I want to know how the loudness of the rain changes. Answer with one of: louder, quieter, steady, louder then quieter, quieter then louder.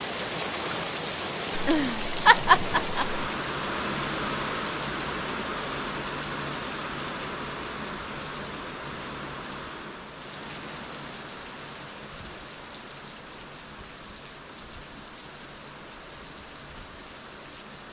quieter.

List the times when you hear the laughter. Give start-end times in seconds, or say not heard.
1.6-3.2.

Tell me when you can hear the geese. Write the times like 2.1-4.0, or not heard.
not heard.